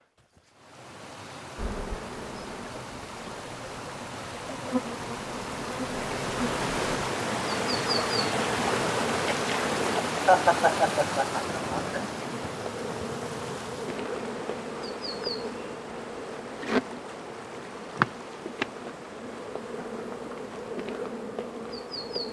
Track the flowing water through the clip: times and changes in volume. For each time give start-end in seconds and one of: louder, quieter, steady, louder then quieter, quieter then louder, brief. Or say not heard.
0.0-22.2 louder then quieter.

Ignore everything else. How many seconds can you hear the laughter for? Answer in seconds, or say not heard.
2 s.